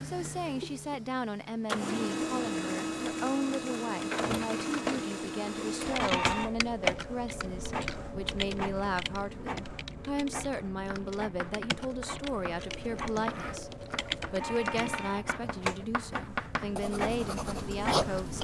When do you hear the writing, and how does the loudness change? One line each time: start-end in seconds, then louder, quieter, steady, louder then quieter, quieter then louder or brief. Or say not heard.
10.8-18.4 louder.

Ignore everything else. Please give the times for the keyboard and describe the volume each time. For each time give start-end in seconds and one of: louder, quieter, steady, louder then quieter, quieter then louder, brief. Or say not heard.
5.8-15.0 quieter then louder.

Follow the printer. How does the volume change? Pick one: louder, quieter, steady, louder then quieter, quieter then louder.
quieter then louder.